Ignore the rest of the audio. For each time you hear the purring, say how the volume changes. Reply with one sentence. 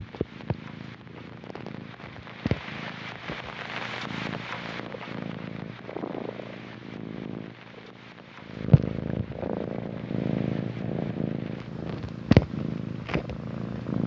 You can hear the purring from 0.0 to 14.0 s, getting louder.